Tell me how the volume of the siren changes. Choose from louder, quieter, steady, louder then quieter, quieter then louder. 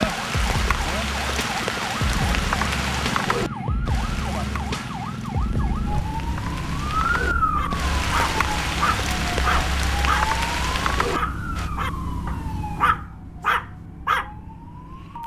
quieter.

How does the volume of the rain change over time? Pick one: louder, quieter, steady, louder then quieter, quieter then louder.
quieter then louder.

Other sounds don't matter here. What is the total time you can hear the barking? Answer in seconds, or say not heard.
6 s.